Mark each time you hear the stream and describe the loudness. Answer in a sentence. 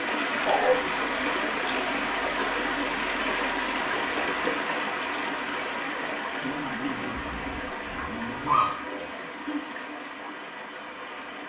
You can hear the stream from 0.0 to 11.4 s, getting quieter.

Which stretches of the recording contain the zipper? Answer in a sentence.
The zipper can be heard from 6.4 to 8.8 s.